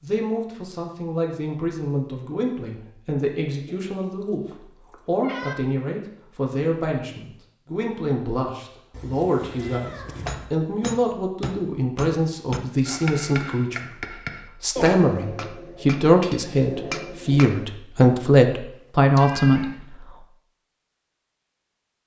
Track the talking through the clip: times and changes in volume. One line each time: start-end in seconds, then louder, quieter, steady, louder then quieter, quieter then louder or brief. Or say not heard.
0.0-20.1 louder.